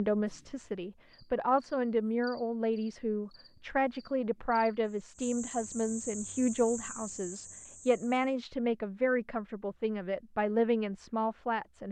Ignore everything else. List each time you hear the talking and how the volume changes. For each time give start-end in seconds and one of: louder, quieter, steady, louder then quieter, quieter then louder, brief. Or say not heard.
0.0-11.8 steady.